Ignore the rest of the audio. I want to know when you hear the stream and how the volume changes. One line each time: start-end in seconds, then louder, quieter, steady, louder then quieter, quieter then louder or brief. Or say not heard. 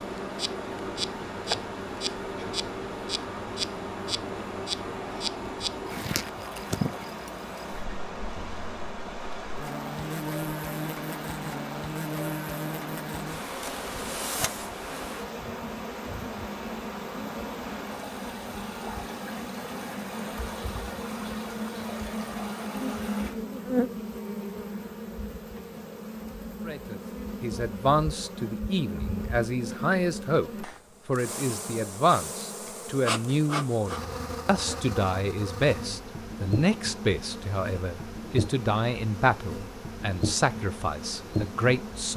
0.0-23.4 steady.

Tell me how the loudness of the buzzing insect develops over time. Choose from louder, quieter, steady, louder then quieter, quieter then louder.
steady.